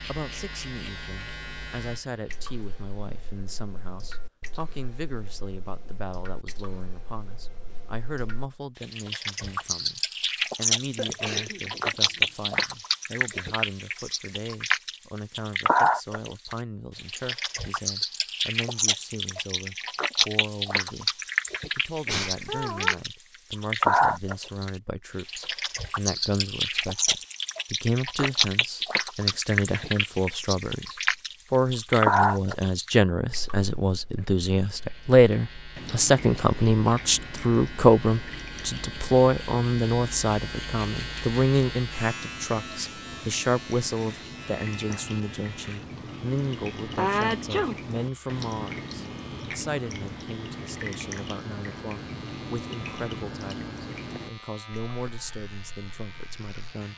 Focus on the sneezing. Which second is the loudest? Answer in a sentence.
The volume of the sneezing peaks at 47 seconds.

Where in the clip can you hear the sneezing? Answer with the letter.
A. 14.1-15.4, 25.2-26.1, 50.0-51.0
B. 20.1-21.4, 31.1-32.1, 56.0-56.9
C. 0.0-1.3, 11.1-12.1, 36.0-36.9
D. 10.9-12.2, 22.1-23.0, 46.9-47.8
D.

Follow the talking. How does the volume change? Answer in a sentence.
The loudness of the talking goes up, then down.